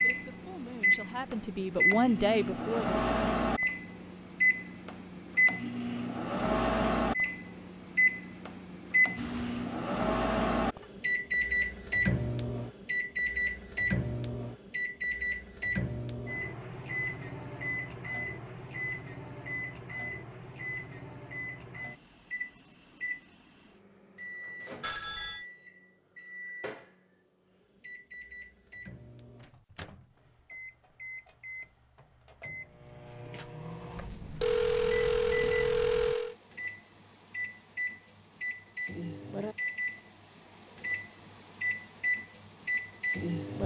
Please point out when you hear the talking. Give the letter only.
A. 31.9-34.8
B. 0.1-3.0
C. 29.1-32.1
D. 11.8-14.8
B.